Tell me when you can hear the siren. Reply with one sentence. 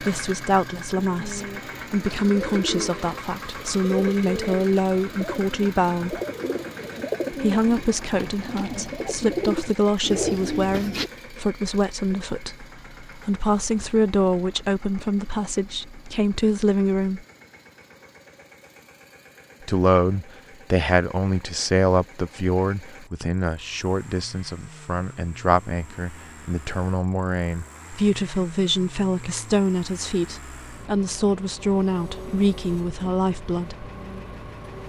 The siren can't be heard in this clip.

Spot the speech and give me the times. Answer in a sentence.
You can hear the speech from 0.0 to 6.2 s, from 7.3 to 17.2 s and from 19.6 to 33.9 s.